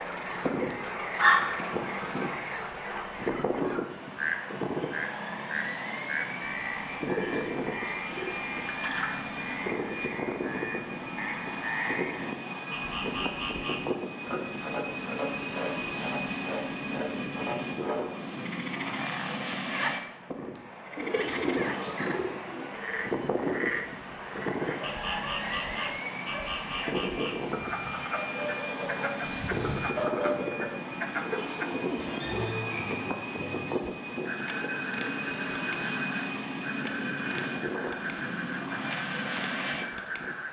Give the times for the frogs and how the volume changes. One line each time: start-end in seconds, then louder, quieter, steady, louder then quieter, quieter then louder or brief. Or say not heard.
0.0-40.4 steady.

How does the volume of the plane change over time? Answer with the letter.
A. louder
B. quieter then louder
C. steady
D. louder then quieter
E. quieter
C.